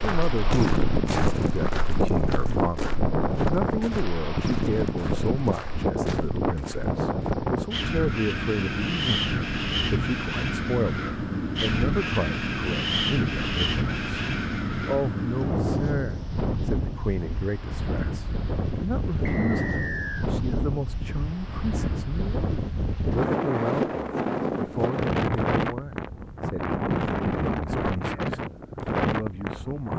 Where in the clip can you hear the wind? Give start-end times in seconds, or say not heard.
0.0-29.9.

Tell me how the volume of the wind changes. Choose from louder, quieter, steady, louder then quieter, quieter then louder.
steady.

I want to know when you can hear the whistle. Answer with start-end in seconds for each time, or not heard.
19.2-20.2.